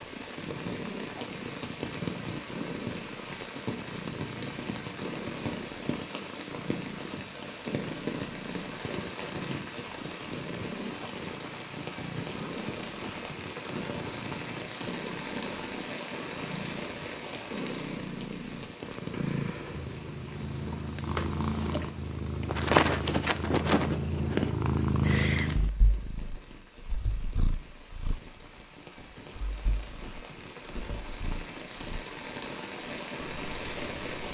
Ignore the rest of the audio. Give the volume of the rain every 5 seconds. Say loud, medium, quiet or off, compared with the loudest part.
loud, loud, loud, loud, medium, quiet, loud.